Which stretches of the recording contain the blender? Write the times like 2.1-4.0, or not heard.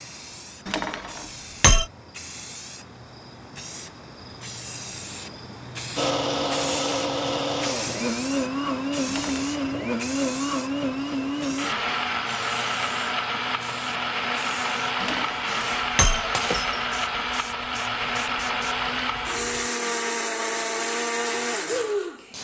6.0-22.3.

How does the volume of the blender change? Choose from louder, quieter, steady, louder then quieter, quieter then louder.
steady.